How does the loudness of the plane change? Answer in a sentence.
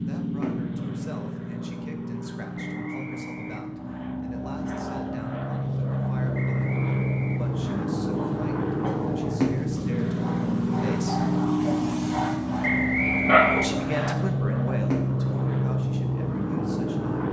The volume of the plane goes up.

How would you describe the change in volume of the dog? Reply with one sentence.
The volume of the dog goes up.